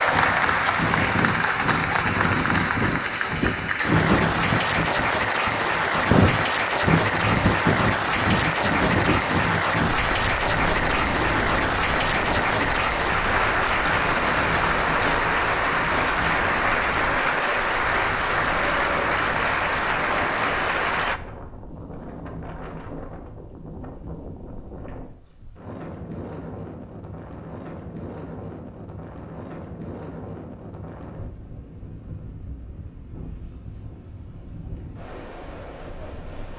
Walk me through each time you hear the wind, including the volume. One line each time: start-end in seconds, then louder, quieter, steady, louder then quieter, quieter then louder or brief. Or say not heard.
0.0-36.5 quieter.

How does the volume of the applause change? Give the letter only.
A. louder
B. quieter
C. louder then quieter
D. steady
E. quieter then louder
D.